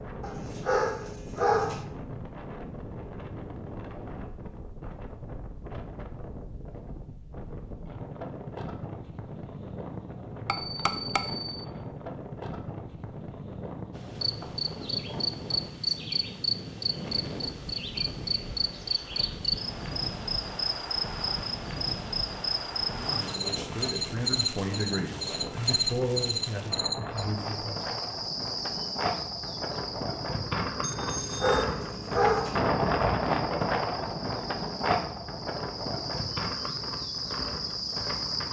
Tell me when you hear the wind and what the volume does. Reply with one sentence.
You can hear the wind from 0.0 to 38.4 s, getting louder.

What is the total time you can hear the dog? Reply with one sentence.
The dog can be heard for 3 seconds in total.